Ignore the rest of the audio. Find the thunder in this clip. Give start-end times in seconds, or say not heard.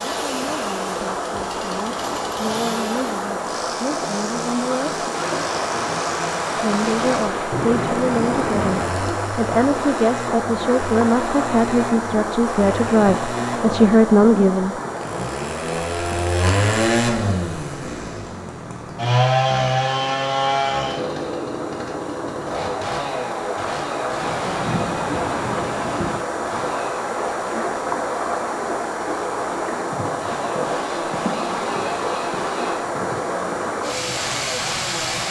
5.1-8.9, 24.2-26.2.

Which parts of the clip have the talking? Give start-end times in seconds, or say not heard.
0.2-5.0, 6.5-14.8.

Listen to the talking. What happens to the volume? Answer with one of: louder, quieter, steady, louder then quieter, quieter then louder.
louder.